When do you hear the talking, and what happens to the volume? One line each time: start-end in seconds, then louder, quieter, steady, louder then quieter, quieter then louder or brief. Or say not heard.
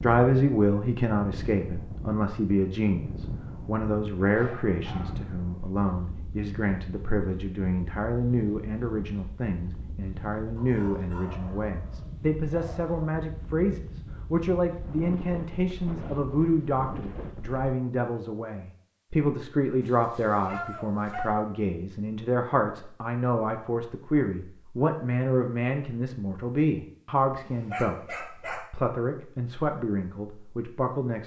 0.0-31.2 steady.